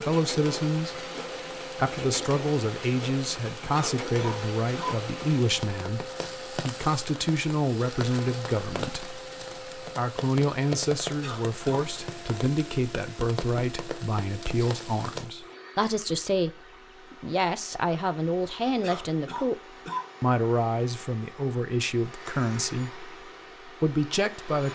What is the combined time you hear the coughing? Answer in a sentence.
You can hear the coughing for 3 seconds altogether.